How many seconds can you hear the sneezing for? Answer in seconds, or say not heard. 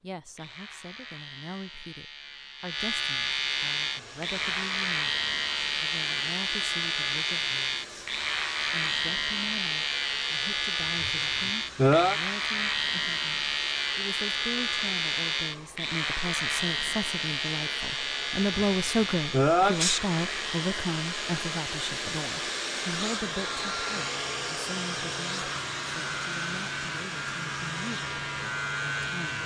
3 s.